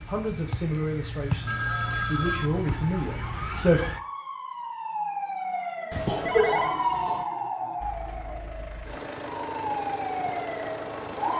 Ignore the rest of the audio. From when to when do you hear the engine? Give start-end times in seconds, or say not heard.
7.8-11.3.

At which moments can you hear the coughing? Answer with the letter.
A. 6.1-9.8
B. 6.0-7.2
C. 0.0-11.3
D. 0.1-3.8
B.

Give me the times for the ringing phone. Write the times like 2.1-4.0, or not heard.
1.4-2.5, 5.9-6.8.